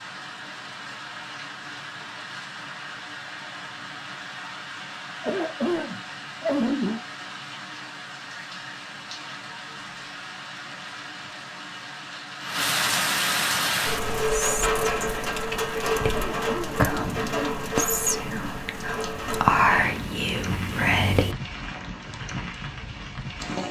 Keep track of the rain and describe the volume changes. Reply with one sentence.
The volume of the rain goes up, then down.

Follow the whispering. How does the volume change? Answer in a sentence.
The loudness of the whispering goes up.